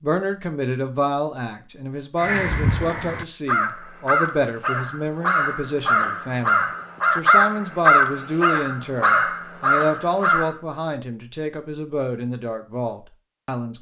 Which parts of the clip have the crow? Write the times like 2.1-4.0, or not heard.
2.2-10.6.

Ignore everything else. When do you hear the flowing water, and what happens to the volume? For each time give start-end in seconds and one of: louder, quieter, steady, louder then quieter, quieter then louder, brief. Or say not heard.
not heard.